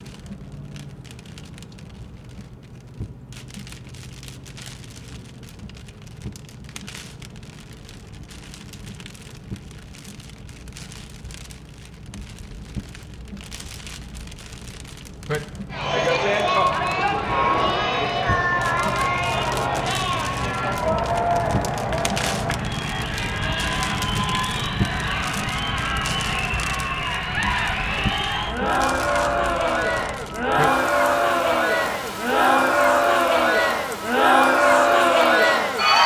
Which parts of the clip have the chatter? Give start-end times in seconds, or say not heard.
15.7-36.0.